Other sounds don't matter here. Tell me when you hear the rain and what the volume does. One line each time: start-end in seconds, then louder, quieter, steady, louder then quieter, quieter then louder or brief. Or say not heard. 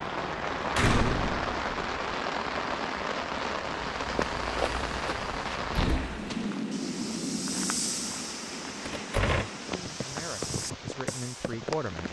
0.0-12.0 quieter.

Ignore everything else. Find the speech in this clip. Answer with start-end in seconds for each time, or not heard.
9.7-12.0.